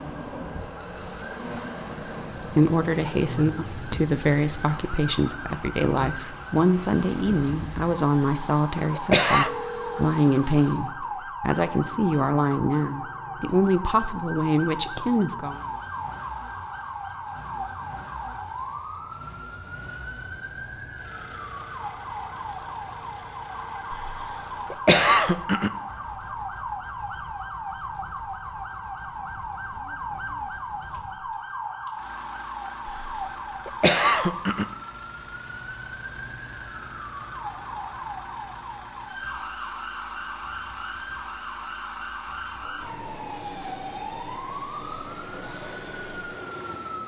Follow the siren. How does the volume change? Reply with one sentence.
The loudness of the siren stays about the same.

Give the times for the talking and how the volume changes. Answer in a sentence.
You can hear the talking from 2.4 to 15.6 s, at a steady volume.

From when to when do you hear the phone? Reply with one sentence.
You can hear the phone from 9.4 to 10.1 s.